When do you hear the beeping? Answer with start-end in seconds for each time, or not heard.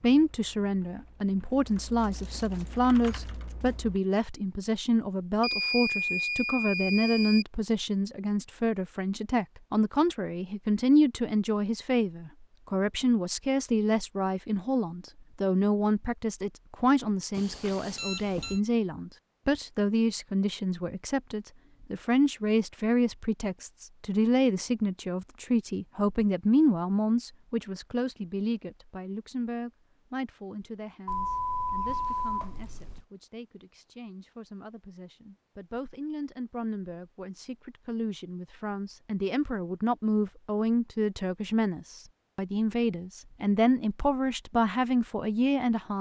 5.4-7.5, 17.4-18.6, 31.1-33.0.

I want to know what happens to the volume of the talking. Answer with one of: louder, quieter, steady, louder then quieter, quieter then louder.
quieter then louder.